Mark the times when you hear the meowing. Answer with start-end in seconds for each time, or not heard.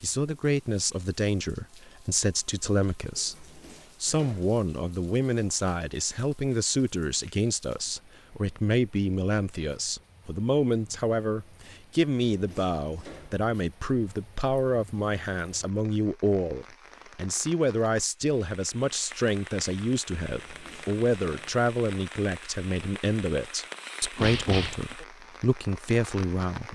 24.1-24.9.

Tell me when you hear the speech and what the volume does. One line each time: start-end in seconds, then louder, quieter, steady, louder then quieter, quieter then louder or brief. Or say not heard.
0.0-26.7 steady.